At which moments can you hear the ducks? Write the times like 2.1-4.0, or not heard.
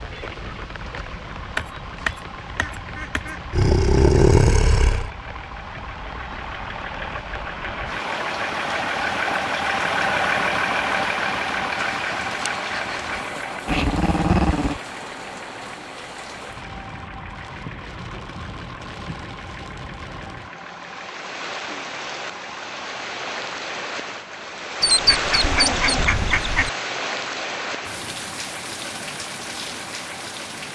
1.6-3.4, 11.8-13.2, 24.8-26.7.